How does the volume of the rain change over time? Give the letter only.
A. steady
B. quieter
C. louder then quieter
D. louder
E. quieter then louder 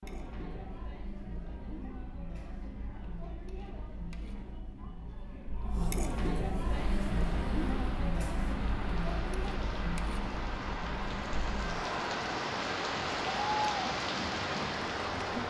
D.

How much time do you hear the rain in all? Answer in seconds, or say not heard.
9 s.